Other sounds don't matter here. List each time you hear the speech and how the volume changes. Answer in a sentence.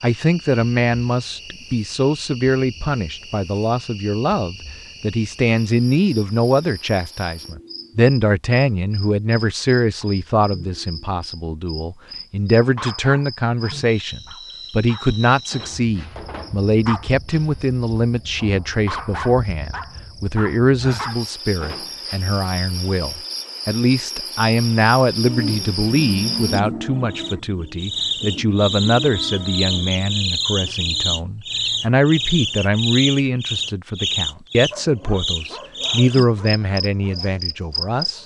The speech can be heard from 0.0 to 38.2 s, at a steady volume.